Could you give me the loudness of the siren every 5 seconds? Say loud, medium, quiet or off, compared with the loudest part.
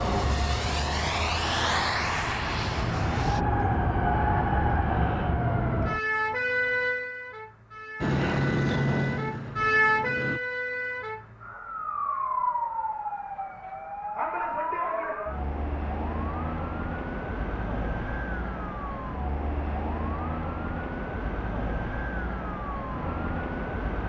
loud, loud, loud, medium, medium.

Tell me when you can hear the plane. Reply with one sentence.
You can hear the plane from 0.0 to 3.5 s and from 8.0 to 10.4 s.